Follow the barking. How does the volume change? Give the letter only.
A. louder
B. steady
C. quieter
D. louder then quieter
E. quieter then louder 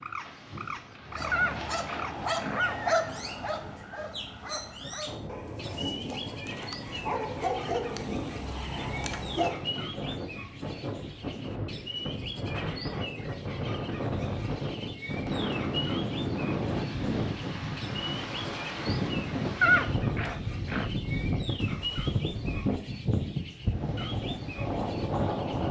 E.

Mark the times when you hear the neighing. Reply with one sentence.
The neighing can be heard from 1.3 to 3.0 s and from 19.6 to 20.9 s.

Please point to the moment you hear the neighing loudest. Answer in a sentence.
The volume of the neighing peaks at 20 seconds.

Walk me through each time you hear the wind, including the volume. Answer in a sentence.
You can hear the wind from 0.0 to 25.6 s, getting louder.